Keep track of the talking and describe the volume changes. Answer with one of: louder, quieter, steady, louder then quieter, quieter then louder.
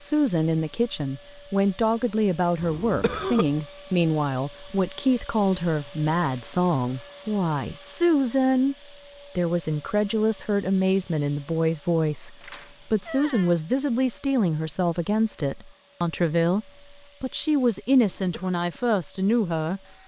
steady.